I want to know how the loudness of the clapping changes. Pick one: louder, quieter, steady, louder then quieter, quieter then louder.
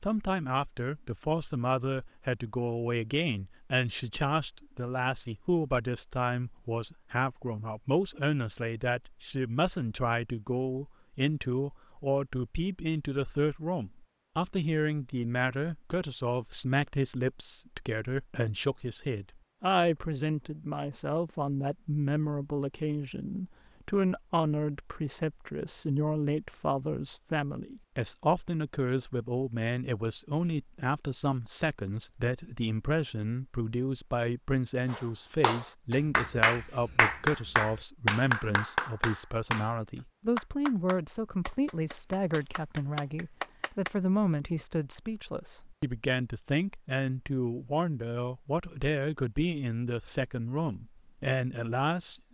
quieter.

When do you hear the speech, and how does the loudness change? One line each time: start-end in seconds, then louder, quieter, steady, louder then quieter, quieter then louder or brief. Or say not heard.
0.0-52.2 steady.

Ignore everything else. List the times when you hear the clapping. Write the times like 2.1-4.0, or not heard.
34.9-43.9.